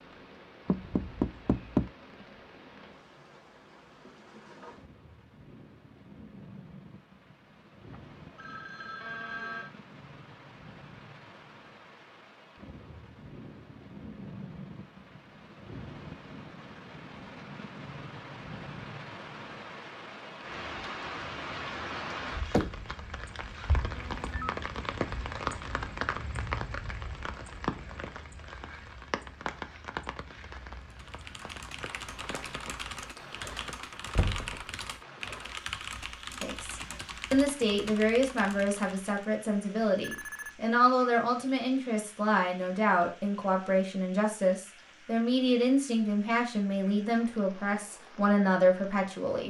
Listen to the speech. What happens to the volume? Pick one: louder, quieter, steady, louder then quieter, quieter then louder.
steady.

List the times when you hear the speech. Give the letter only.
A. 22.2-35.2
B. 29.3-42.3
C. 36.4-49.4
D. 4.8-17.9
C.